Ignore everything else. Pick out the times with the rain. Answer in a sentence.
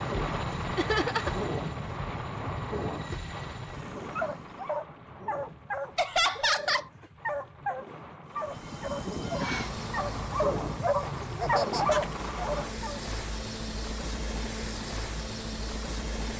The rain can be heard from 0.0 to 12.8 s.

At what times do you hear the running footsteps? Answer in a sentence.
You can't hear the running footsteps here.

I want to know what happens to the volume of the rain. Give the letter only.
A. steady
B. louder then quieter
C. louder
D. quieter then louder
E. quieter
D.